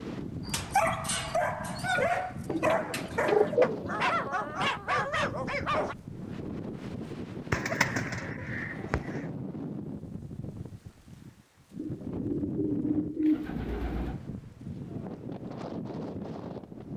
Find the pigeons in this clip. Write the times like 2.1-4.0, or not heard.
2.5-4.0, 7.5-9.2, 11.8-14.2.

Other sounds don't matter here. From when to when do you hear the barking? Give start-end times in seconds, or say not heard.
0.5-6.0.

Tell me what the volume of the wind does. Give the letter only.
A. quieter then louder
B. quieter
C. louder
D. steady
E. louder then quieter
D.